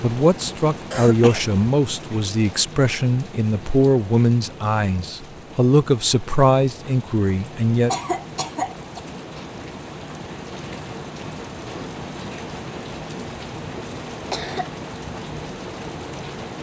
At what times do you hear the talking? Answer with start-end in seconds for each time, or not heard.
0.0-8.0.